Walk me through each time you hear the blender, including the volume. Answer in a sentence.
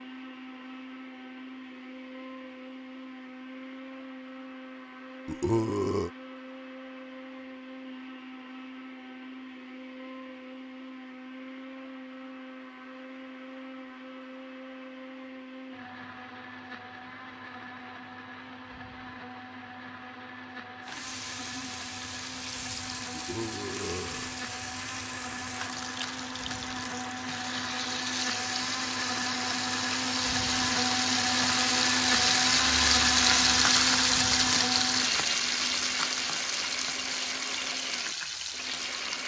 The blender can be heard from 0.0 to 39.2 s, getting louder.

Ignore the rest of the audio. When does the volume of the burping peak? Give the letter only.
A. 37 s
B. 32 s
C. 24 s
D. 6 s
D.